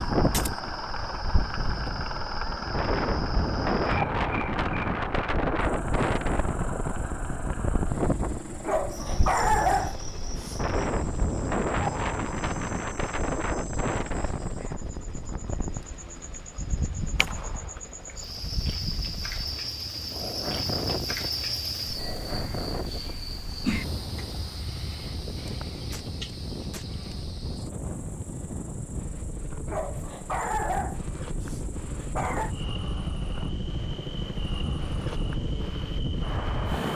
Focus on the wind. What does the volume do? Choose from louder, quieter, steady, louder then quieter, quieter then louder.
quieter.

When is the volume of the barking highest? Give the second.
10 s.